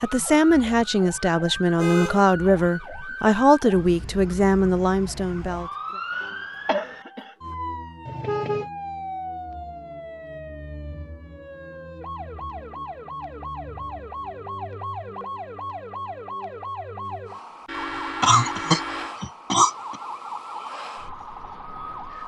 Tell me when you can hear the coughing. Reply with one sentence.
The coughing can be heard from 6.2 to 7.3 s and from 18.2 to 19.9 s.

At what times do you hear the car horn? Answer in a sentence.
You can hear the car horn from 1.8 to 2.4 s, from 8.1 to 8.7 s and from 17.6 to 19.1 s.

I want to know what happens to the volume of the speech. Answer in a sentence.
The volume of the speech stays about the same.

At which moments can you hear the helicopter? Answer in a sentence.
You can't hear the helicopter here.